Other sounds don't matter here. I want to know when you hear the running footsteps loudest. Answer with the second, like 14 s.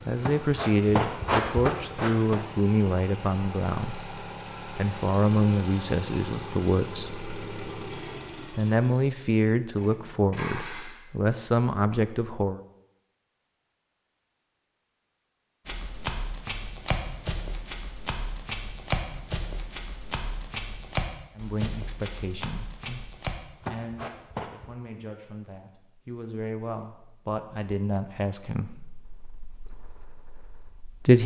1 s.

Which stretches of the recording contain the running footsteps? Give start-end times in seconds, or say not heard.
0.0-2.5, 15.7-24.7.